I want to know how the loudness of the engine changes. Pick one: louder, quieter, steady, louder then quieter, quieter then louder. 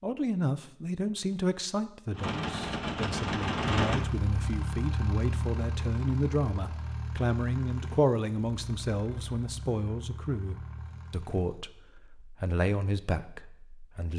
quieter.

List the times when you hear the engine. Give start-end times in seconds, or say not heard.
2.1-11.6.